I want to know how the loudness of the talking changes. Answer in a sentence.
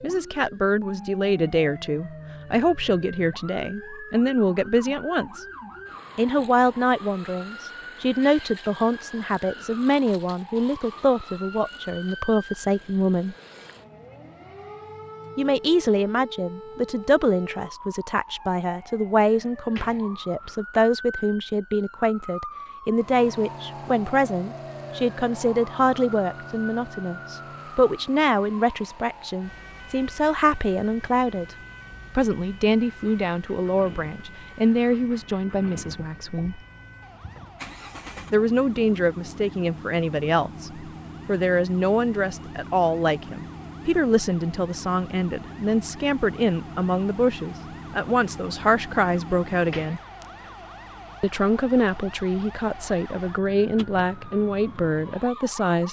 The loudness of the talking stays about the same.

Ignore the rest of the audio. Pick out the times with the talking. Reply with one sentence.
The talking can be heard from 0.0 to 5.5 s, from 6.2 to 13.3 s, from 15.3 to 31.6 s, from 32.1 to 36.6 s, from 38.3 to 50.0 s and from 51.2 to 55.8 s.